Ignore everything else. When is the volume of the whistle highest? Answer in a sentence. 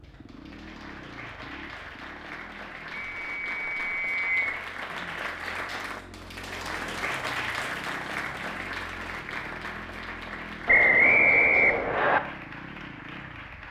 The loudest moment of the whistle is at 11 seconds.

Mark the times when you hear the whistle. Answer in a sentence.
The whistle can be heard from 3.0 to 4.6 s and from 10.7 to 12.2 s.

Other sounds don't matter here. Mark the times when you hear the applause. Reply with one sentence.
You can hear the applause from 0.0 to 13.6 s.